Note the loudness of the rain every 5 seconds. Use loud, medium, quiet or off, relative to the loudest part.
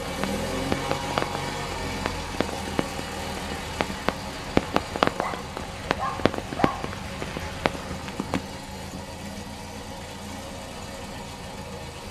loud, loud, off.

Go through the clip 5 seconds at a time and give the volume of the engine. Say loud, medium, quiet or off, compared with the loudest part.
loud, medium, medium.